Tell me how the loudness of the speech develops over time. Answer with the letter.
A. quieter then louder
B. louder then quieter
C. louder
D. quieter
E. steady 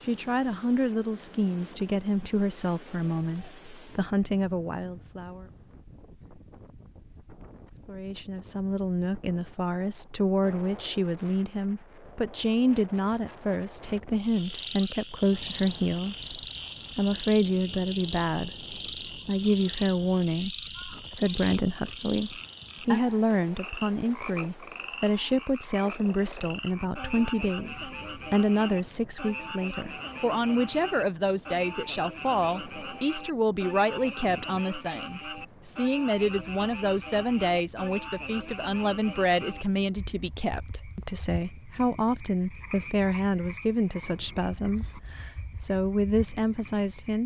E.